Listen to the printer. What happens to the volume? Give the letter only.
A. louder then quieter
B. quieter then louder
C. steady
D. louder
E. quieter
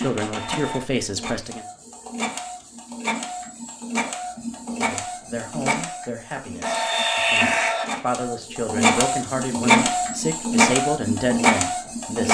D.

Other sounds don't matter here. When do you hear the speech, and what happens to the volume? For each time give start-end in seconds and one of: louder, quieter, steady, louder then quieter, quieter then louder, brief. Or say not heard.
0.0-1.6 brief
4.7-12.2 quieter then louder.